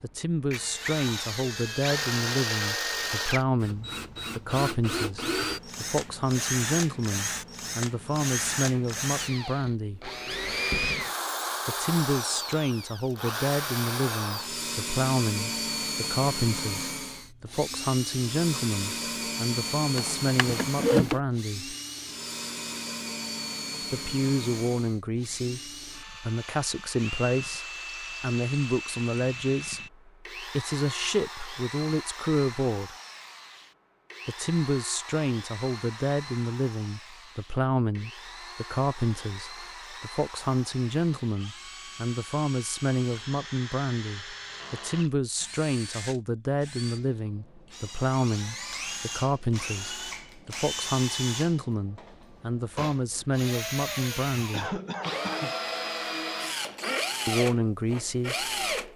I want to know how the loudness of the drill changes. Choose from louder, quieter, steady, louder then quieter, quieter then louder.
quieter then louder.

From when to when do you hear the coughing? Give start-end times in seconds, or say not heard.
54.5-55.5.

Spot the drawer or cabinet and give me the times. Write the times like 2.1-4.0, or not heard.
19.9-21.2.